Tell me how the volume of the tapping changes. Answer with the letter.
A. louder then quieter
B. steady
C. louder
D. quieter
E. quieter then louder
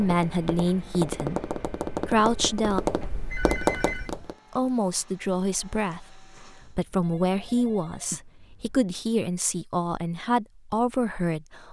C.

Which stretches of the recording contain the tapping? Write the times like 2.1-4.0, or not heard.
0.0-4.3.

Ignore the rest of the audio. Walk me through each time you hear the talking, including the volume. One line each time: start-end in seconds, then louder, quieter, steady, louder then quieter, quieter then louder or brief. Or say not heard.
0.0-2.8 brief
4.5-11.6 steady.